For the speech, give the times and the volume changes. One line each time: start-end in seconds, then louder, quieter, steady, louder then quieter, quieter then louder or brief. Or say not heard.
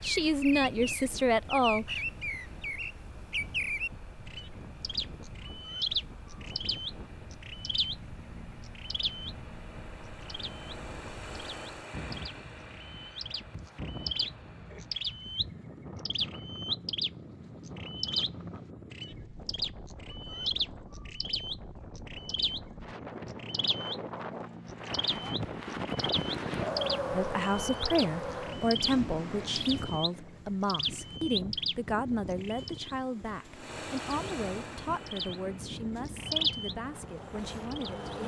0.0-2.0 brief
27.1-38.2 quieter.